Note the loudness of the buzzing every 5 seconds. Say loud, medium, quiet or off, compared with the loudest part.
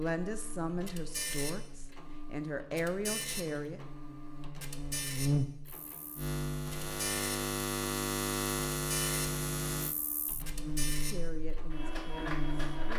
quiet, loud, medium.